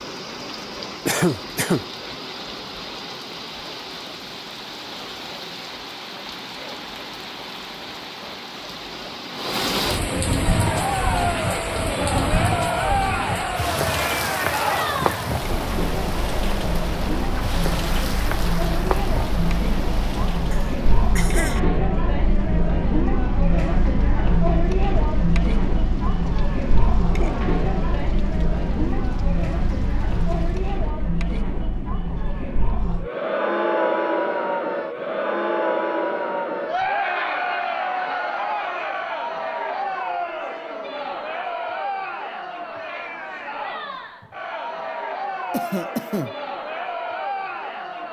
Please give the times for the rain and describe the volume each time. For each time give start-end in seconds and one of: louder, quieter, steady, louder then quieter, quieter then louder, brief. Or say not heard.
0.0-30.9 louder then quieter.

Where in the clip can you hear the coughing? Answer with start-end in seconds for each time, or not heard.
1.1-1.9, 20.5-21.6, 45.5-46.4.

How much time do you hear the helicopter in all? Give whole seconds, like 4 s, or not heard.
not heard.